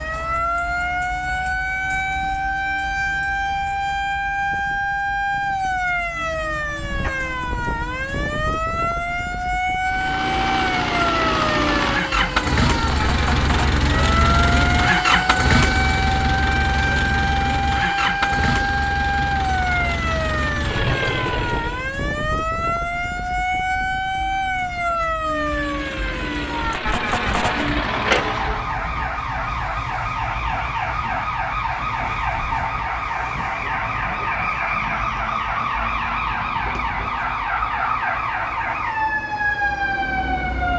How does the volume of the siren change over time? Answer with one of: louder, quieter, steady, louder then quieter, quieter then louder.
steady.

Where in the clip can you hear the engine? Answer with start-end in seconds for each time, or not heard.
9.8-21.9, 25.3-28.7.